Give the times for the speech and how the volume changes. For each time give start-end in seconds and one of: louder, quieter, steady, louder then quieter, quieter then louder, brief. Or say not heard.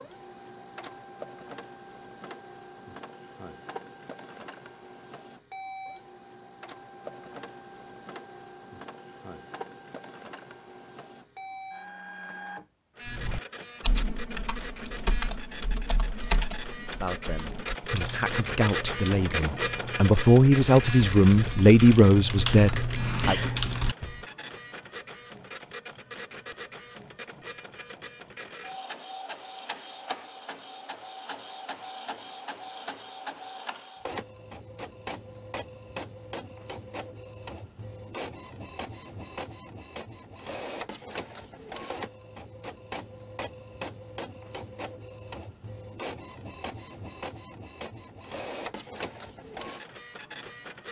17.0-23.4 louder.